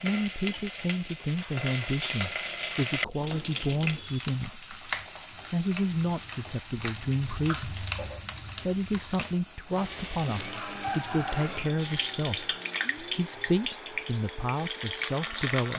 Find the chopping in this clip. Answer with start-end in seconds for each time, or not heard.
not heard.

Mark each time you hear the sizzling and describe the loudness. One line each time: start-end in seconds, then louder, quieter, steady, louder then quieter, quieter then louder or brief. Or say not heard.
0.0-15.7 steady.